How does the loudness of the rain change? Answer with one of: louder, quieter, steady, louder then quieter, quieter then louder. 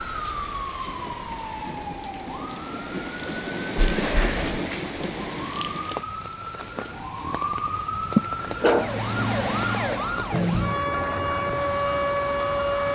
louder then quieter.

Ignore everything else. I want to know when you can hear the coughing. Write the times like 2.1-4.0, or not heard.
8.2-9.4.